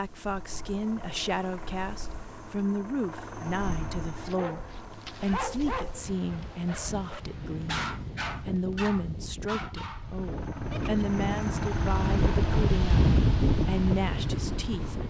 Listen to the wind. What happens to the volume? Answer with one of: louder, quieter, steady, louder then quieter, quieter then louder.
louder.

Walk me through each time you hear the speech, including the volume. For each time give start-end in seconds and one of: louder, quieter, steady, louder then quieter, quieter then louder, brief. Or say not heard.
0.0-15.0 steady.